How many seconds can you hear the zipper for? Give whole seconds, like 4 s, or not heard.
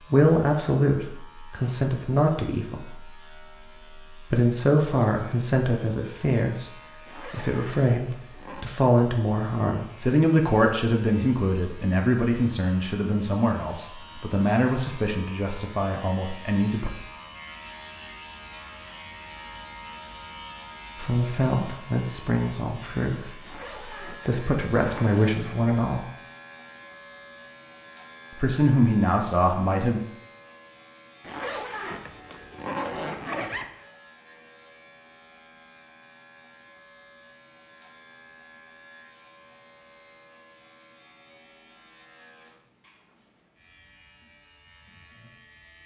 6 s.